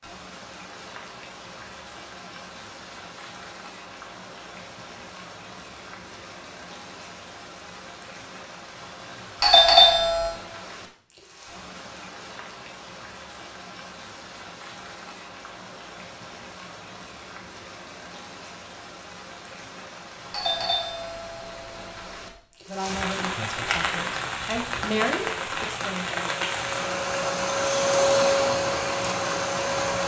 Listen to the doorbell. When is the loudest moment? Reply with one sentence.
The volume of the doorbell peaks at 10 seconds.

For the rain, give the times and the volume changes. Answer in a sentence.
The rain can be heard from 0.0 to 30.0 s, getting louder.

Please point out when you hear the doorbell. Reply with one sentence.
The doorbell can be heard from 9.4 to 10.4 s and from 20.3 to 22.4 s.